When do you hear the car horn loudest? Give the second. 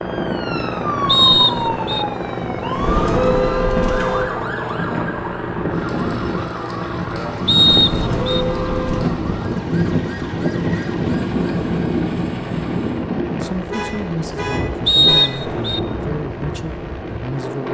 3 s.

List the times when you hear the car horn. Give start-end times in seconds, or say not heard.
2.8-4.2, 7.8-9.0, 13.7-15.3.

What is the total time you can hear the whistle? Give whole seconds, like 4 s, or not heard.
3 s.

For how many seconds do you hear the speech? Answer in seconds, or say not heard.
4 s.